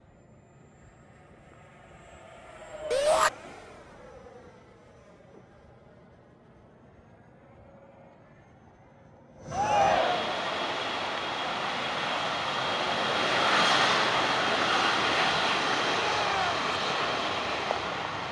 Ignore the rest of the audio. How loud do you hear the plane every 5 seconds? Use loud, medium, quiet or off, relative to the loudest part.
quiet, quiet, loud, loud.